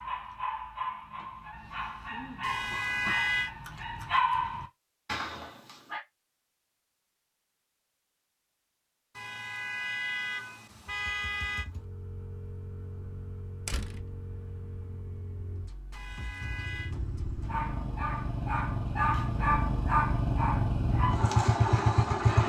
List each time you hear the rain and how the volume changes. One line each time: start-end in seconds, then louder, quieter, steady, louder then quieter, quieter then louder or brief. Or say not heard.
not heard.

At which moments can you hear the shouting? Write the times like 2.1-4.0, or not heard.
not heard.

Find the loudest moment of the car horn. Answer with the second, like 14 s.
3 s.